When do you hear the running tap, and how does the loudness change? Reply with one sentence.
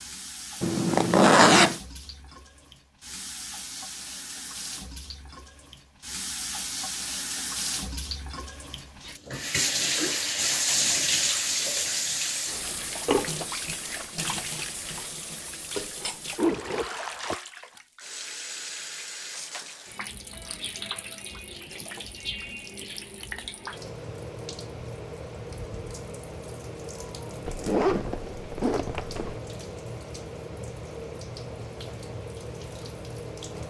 You can hear the running tap from 0.0 to 33.6 s, getting louder then quieter.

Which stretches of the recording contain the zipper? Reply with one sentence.
You can hear the zipper from 0.6 to 1.8 s, from 16.4 to 17.4 s and from 27.4 to 29.4 s.